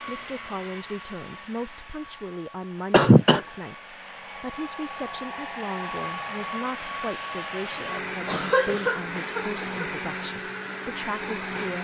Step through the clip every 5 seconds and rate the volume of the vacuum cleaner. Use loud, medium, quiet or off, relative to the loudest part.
medium, loud, loud.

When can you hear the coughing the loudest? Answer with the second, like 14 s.
3 s.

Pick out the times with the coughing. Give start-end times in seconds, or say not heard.
2.9-3.4, 7.8-9.8.